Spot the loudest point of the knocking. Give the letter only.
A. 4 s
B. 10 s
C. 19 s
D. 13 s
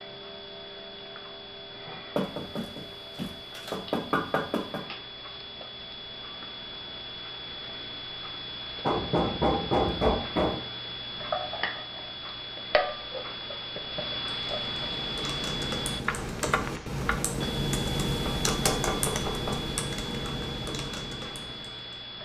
B.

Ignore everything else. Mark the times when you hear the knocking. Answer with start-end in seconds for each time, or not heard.
2.1-4.8, 8.8-10.6, 18.2-19.6.